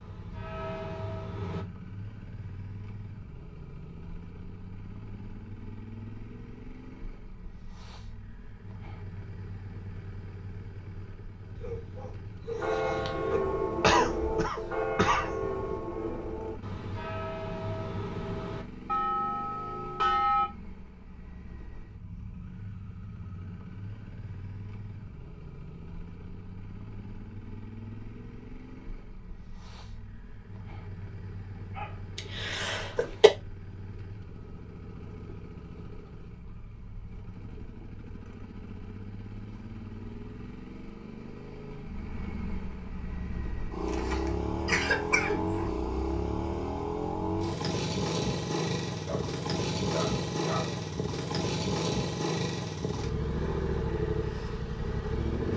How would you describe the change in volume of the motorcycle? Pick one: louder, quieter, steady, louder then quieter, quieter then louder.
louder.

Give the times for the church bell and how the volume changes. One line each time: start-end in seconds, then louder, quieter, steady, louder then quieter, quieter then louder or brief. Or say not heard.
0.0-1.6 brief
12.6-20.5 quieter then louder.